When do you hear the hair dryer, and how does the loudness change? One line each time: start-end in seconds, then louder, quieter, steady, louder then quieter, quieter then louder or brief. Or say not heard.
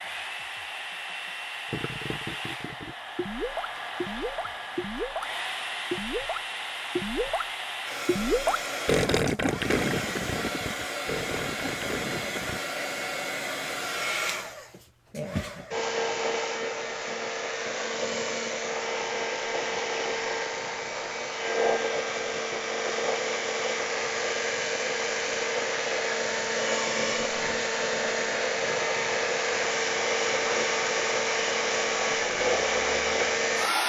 0.0-33.8 louder.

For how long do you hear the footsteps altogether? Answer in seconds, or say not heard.
not heard.